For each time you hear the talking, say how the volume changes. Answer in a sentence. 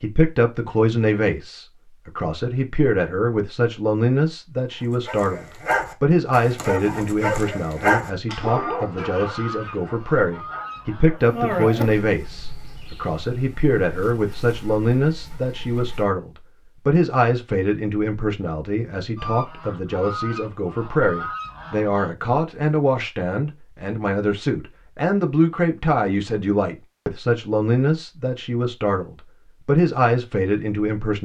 You can hear the talking from 0.0 to 31.2 s, at a steady volume.